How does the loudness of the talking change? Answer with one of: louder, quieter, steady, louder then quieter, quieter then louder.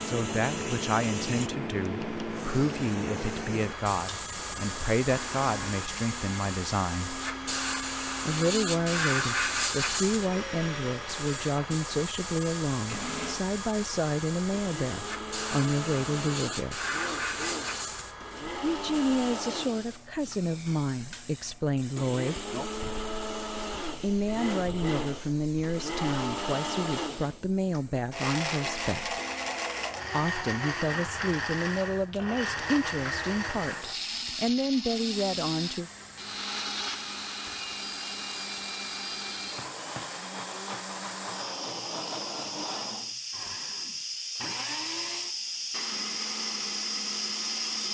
steady.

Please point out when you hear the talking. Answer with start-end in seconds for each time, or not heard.
0.0-7.2, 8.2-16.9, 18.6-22.6, 24.0-29.2, 30.1-35.9.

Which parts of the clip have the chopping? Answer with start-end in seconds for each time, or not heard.
not heard.